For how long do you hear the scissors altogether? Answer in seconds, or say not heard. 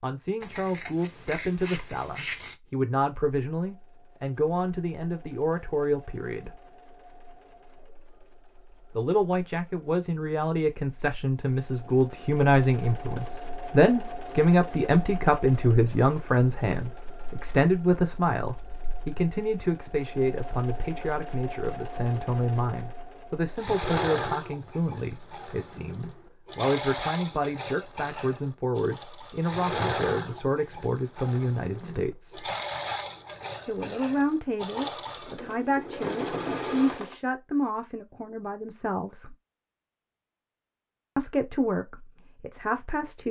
2 s.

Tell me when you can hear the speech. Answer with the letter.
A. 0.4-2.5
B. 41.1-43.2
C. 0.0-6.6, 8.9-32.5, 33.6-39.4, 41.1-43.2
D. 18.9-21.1
C.